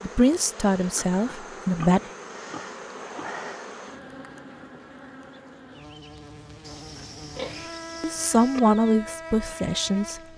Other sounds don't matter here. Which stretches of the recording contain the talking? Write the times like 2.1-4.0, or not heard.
0.0-2.0, 8.0-10.2.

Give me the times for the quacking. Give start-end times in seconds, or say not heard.
not heard.